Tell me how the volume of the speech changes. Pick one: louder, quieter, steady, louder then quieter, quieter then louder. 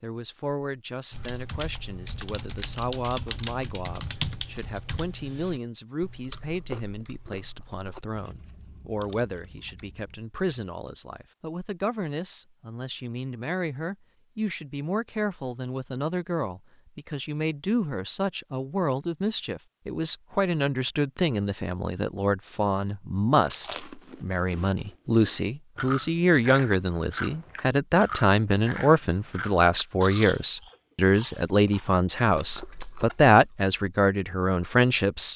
louder.